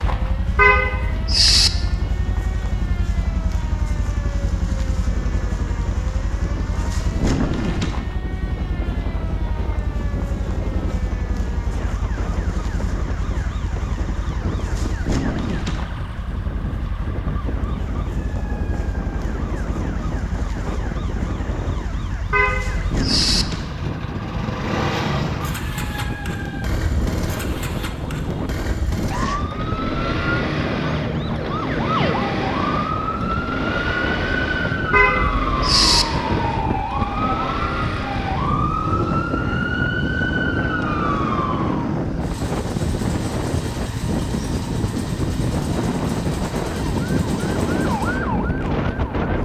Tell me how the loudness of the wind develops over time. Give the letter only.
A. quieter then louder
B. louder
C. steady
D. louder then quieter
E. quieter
B.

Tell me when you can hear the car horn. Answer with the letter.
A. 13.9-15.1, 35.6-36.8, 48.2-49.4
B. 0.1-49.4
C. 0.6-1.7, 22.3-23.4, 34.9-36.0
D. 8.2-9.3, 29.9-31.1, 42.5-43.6
C.